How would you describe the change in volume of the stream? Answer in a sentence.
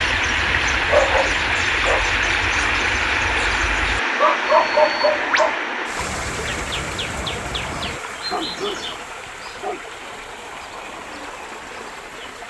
The loudness of the stream goes down.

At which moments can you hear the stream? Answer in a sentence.
The stream can be heard from 0.0 to 12.4 s.